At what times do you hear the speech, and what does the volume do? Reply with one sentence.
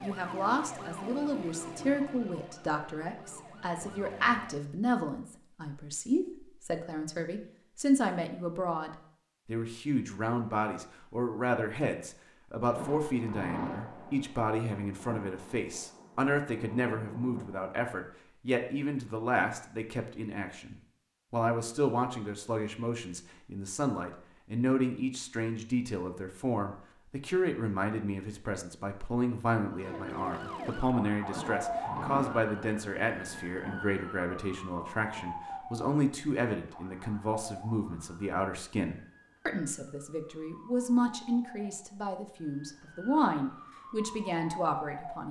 The speech can be heard from 0.0 to 45.2 s, at a steady volume.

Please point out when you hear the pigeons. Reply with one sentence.
The pigeons can't be heard in this clip.